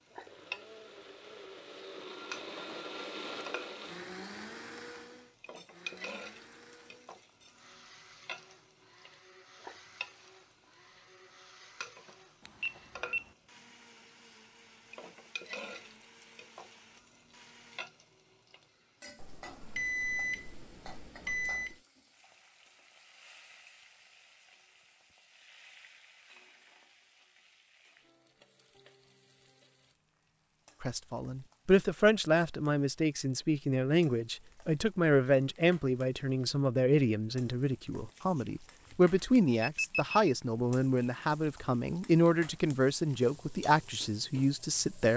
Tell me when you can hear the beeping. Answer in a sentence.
The beeping can be heard from 12.4 to 13.3 s, from 19.1 to 21.8 s and from 38.1 to 40.2 s.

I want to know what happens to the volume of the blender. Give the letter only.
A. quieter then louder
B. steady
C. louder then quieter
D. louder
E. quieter
E.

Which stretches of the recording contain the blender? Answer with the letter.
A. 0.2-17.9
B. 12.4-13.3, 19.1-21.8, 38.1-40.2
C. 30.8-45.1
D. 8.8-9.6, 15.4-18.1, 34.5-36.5
A.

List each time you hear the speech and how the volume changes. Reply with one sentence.
The speech can be heard from 30.8 to 45.1 s, at a steady volume.